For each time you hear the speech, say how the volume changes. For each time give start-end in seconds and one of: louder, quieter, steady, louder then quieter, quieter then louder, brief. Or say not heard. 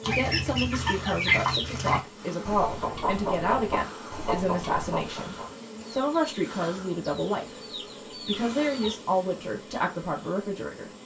0.0-10.9 steady.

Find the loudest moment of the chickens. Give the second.
1 s.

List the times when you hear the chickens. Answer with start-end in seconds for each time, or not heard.
0.0-8.9.